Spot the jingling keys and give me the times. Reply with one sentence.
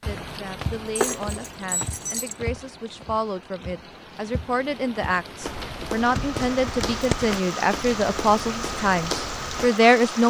You can hear the jingling keys from 0.9 to 2.4 s and from 6.1 to 7.4 s.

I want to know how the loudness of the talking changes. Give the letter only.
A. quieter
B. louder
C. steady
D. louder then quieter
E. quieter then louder
B.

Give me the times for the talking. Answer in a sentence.
The talking can be heard from 0.1 to 10.2 s.